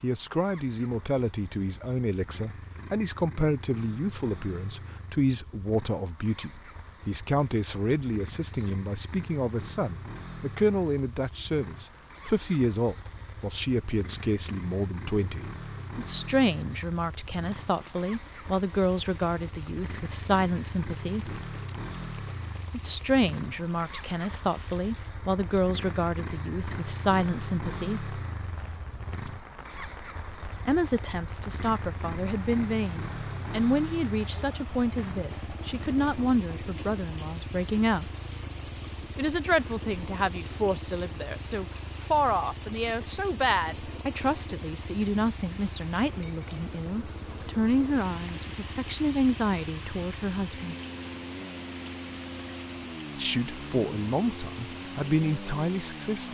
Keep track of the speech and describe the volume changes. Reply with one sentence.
The loudness of the speech stays about the same.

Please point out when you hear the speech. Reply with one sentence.
You can hear the speech from 0.0 to 21.4 s, from 22.7 to 28.1 s, from 30.6 to 38.1 s, from 39.1 to 50.8 s and from 53.1 to 56.2 s.